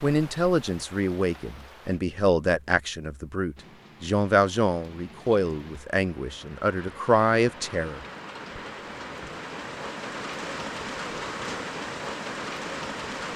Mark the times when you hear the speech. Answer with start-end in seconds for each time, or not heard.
0.0-8.1.